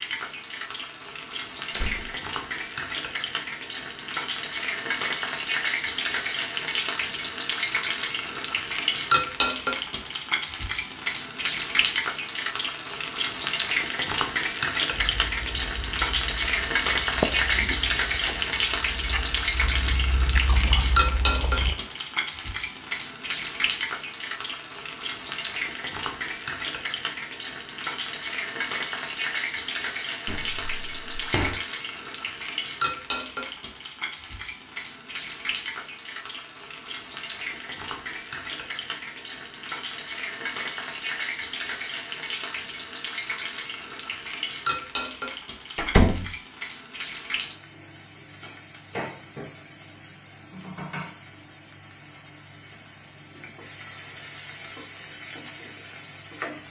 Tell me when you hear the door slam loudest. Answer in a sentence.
The loudest moment of the door slam is at 46 seconds.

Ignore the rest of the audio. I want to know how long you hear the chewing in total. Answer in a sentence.
You can hear the chewing for 7 seconds altogether.